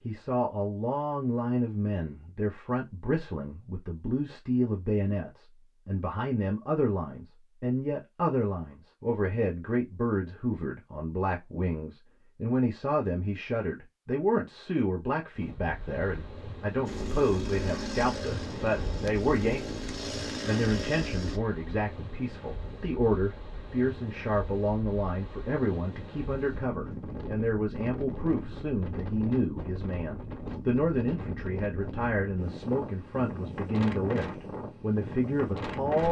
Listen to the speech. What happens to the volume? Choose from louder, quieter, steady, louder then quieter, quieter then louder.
steady.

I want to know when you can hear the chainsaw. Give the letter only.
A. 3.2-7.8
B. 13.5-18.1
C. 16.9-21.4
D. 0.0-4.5
C.